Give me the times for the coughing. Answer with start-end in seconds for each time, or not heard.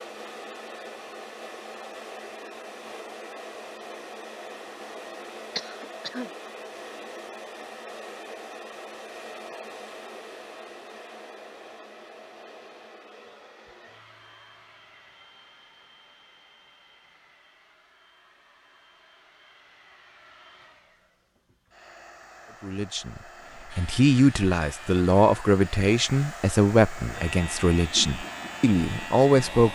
5.5-6.3.